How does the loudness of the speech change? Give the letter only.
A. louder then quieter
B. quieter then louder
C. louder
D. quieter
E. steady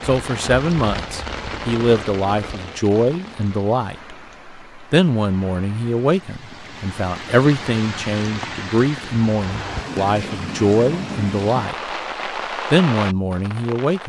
E.